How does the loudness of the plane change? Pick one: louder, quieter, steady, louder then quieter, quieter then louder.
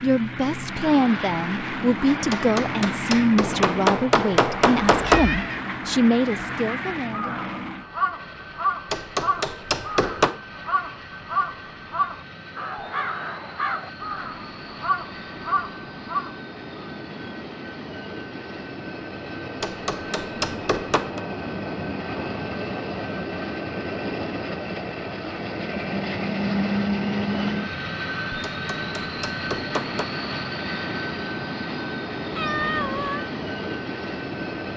quieter then louder.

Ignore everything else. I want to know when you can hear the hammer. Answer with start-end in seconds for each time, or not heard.
2.3-5.2, 8.9-10.3, 19.6-21.2, 28.4-30.1.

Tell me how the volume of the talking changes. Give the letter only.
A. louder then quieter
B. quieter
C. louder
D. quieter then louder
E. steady
E.